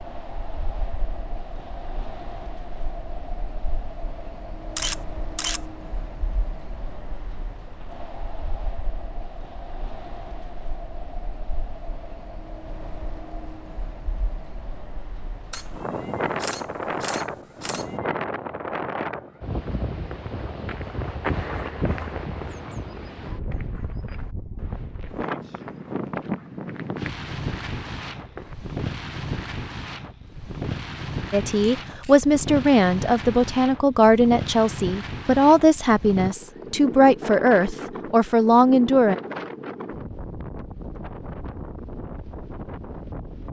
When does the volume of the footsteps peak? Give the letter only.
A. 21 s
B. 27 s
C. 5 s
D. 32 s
A.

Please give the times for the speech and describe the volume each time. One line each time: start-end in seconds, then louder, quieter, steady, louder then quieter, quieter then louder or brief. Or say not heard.
31.3-39.1 steady.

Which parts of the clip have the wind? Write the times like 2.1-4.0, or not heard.
0.0-43.4.